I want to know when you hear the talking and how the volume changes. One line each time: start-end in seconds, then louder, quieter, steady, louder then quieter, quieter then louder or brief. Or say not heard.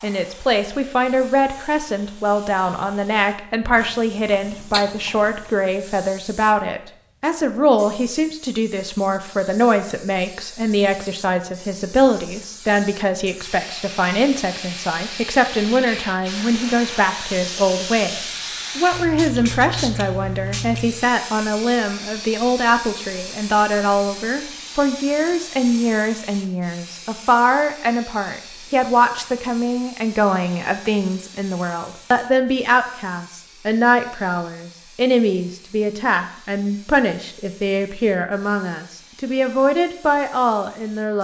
0.0-41.1 steady.